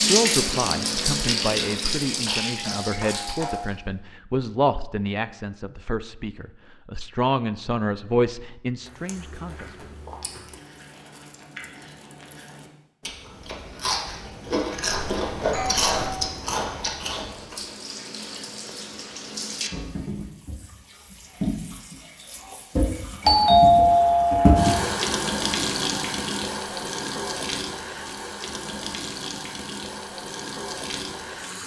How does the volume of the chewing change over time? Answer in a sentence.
The volume of the chewing goes up.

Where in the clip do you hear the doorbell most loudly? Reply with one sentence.
The loudest moment of the doorbell is at 24 seconds.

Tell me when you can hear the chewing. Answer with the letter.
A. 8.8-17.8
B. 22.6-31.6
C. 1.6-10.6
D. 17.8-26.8
A.